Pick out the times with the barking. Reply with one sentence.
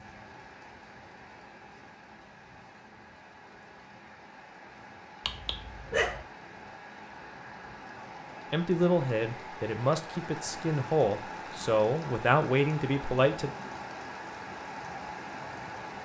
The barking can be heard from 5.2 to 6.2 s.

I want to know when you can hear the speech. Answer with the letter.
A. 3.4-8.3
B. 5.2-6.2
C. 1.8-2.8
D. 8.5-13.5
D.